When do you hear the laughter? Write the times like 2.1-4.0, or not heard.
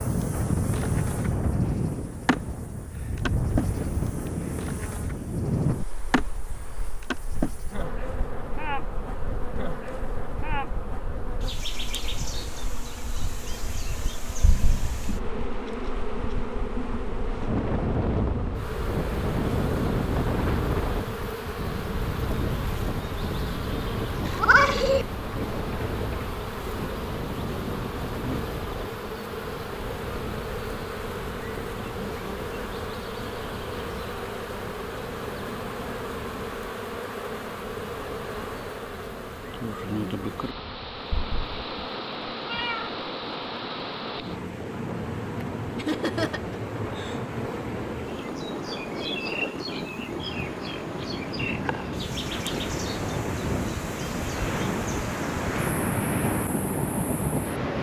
45.8-47.3.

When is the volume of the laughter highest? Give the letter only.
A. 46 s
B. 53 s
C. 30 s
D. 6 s
A.